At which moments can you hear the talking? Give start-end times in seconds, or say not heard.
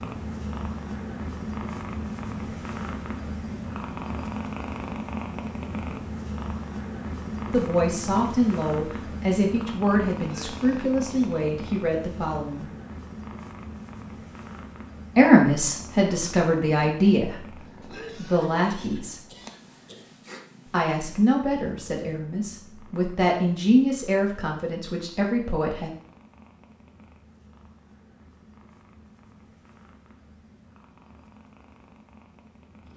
7.5-12.7, 15.2-19.2, 20.7-25.9.